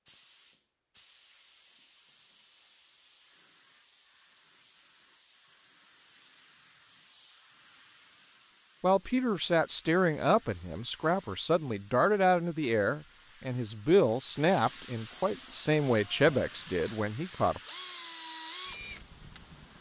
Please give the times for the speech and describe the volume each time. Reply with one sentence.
You can hear the speech from 8.8 to 17.6 s, at a steady volume.